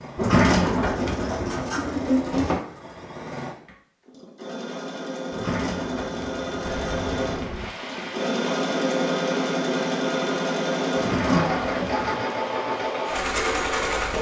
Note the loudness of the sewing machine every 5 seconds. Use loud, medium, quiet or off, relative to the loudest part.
quiet, loud, loud.